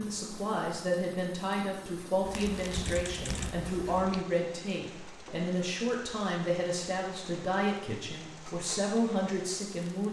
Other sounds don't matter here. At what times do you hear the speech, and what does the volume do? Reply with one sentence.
The speech can be heard from 0.0 to 10.0 s, at a steady volume.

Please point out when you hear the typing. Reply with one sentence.
The typing can be heard from 2.2 to 4.2 s.